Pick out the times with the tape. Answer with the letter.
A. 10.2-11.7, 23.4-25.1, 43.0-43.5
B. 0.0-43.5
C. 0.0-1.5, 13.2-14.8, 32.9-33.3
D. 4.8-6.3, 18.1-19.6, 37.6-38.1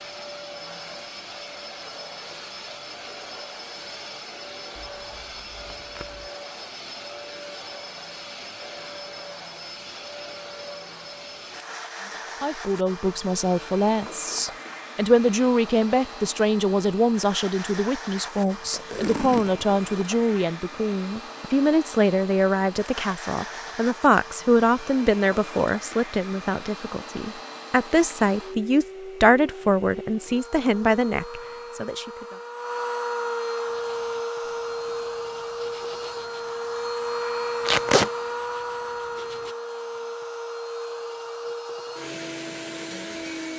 D.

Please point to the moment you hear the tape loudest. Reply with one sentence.
The volume of the tape peaks at 38 seconds.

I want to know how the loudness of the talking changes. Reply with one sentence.
The loudness of the talking stays about the same.